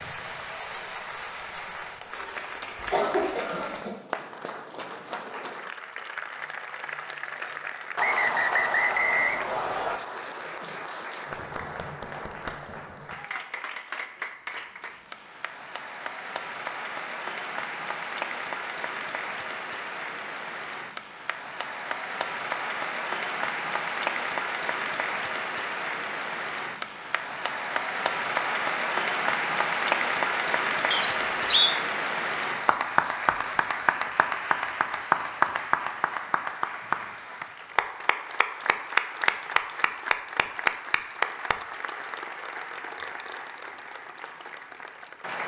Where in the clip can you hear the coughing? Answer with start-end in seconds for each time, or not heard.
2.8-4.0.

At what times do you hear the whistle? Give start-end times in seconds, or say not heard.
8.0-10.0, 30.9-31.8.